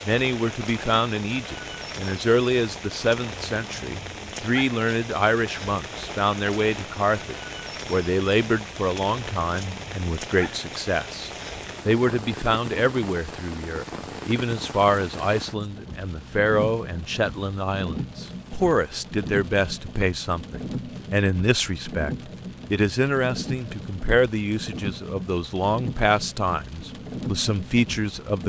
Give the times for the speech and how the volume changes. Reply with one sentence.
You can hear the speech from 0.1 to 28.4 s, at a steady volume.